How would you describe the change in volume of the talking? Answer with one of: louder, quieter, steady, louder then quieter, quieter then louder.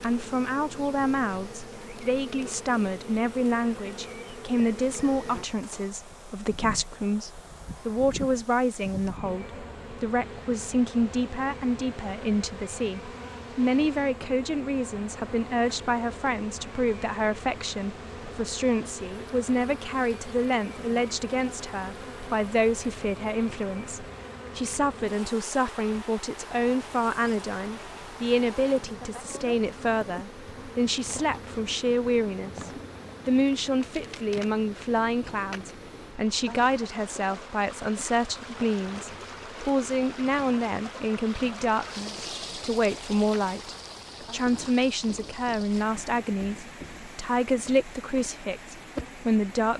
steady.